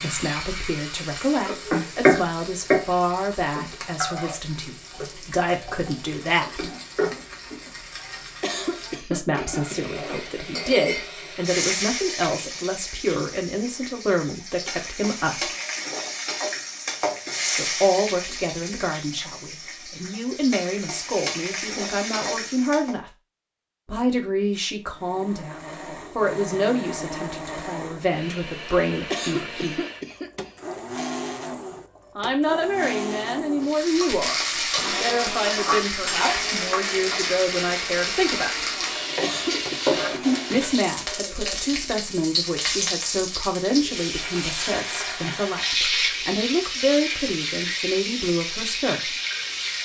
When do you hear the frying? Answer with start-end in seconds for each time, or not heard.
0.0-22.9, 33.6-49.8.